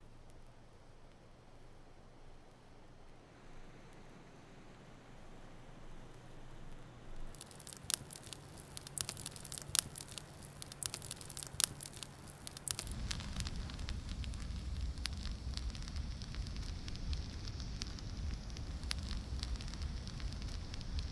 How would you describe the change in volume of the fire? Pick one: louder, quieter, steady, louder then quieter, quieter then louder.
louder.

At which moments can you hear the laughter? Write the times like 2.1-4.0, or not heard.
not heard.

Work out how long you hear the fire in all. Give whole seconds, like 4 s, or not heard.
21 s.